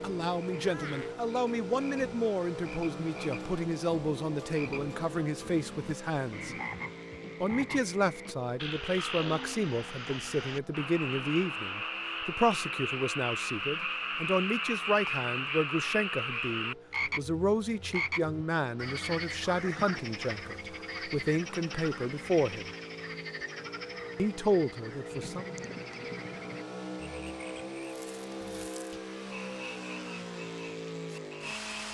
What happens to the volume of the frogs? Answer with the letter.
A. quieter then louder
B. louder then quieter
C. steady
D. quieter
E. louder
B.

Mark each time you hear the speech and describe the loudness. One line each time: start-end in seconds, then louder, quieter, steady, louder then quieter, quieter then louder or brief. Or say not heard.
0.0-6.5 steady
7.4-22.7 steady
24.1-25.4 brief.